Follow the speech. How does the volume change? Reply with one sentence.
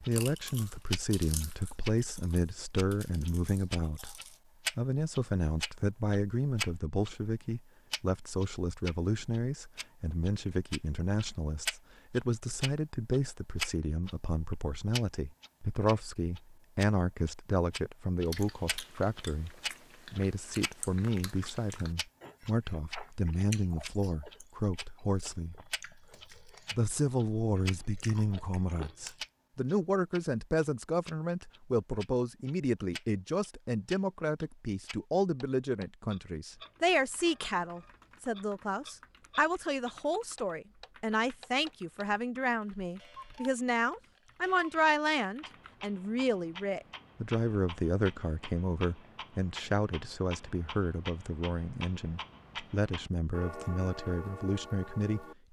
The loudness of the speech stays about the same.